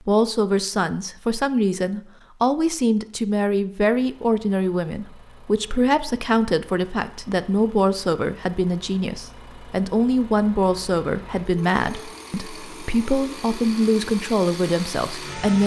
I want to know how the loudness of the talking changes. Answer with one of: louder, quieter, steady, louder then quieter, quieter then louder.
steady.